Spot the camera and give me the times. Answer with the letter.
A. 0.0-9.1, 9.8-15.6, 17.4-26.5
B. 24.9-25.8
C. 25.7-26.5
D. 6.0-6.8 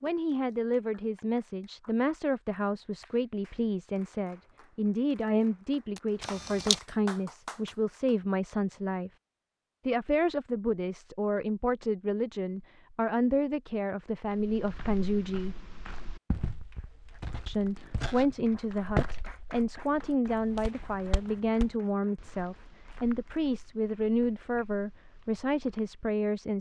D.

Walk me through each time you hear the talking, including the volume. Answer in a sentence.
You can hear the talking from 0.0 to 9.1 s, at a steady volume; from 9.8 to 15.6 s, at a steady volume; and from 17.4 to 26.5 s, at a steady volume.